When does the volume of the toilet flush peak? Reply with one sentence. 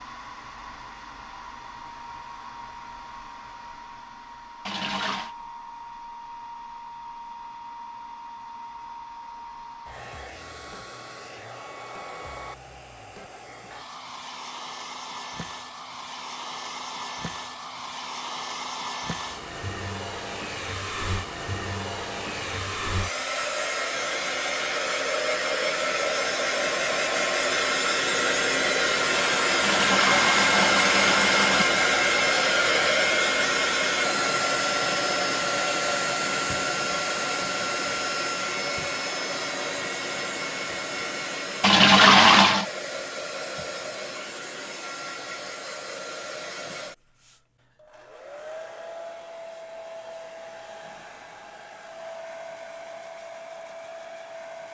The loudest moment of the toilet flush is at 42 seconds.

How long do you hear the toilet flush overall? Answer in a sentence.
The toilet flush can be heard for 4 seconds in total.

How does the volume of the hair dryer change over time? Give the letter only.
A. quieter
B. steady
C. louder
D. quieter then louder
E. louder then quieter
E.